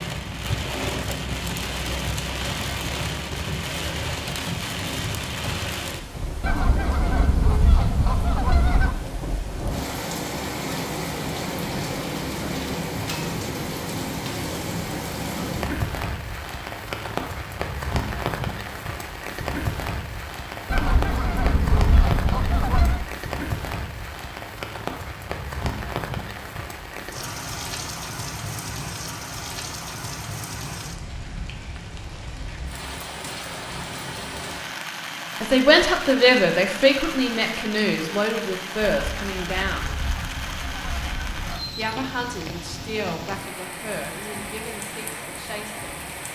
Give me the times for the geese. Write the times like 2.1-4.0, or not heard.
6.4-8.9, 20.7-23.1, 38.9-41.6.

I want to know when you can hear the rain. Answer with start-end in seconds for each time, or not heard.
0.0-46.3.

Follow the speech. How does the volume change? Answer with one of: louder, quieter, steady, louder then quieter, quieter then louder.
quieter.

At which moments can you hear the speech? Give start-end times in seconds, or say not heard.
35.4-39.9, 41.8-46.0.